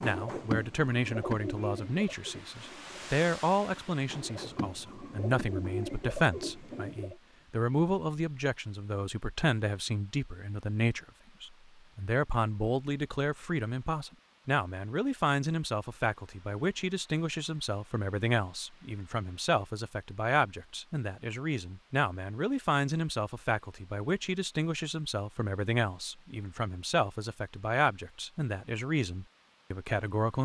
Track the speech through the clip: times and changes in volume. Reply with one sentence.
You can hear the speech from 0.0 to 30.4 s, at a steady volume.